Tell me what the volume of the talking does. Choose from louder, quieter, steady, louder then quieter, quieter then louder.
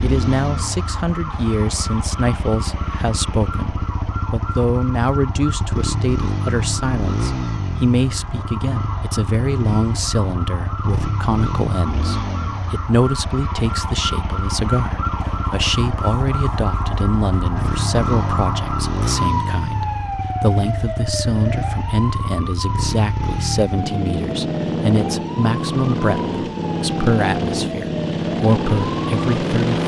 steady.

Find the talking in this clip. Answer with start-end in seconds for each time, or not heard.
0.0-29.8.